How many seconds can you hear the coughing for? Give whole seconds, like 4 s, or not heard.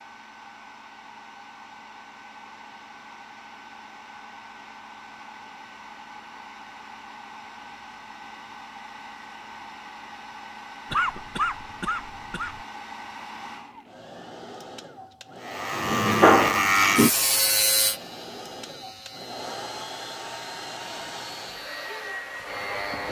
2 s.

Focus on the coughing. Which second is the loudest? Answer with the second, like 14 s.
11 s.